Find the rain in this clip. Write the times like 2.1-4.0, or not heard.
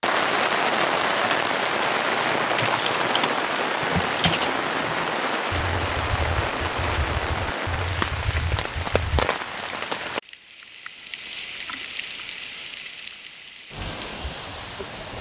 0.0-15.1.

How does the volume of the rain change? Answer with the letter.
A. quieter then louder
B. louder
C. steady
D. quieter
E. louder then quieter
D.